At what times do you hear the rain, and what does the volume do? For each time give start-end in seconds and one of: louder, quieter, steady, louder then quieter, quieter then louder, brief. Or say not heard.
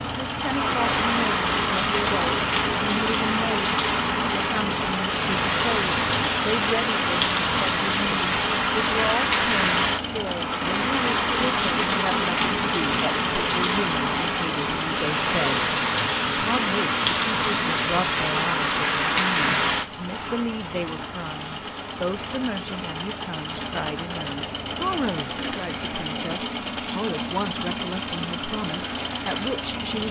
0.0-29.8 quieter.